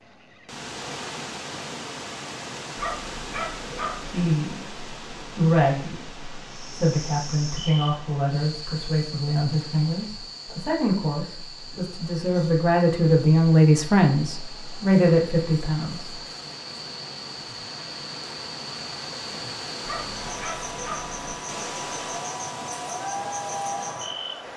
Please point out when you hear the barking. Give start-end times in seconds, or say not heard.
2.8-4.2, 19.8-21.1.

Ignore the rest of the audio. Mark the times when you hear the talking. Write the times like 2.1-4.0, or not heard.
4.1-16.2.